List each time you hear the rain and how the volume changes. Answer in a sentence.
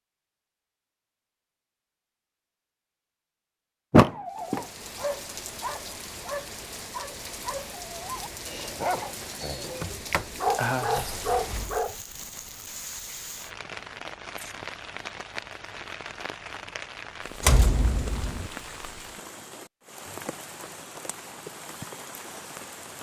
The rain can be heard from 4.3 to 22.9 s, at a steady volume.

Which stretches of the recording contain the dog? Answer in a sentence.
You can hear the dog from 4.0 to 11.9 s.